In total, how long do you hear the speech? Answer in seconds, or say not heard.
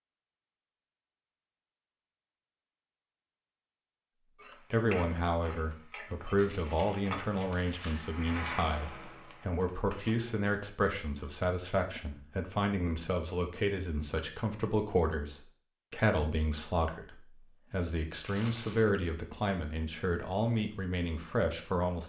17 s.